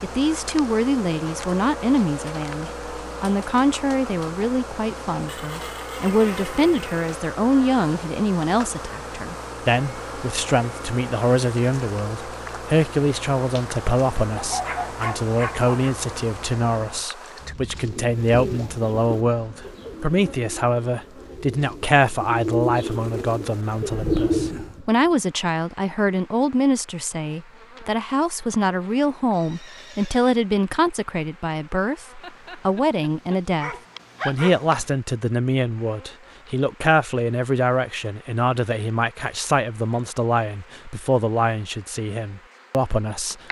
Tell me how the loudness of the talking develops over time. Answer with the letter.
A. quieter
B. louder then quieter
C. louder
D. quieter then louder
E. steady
E.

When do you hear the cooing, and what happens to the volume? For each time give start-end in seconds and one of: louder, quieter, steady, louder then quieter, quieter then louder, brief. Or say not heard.
17.8-24.9 quieter then louder.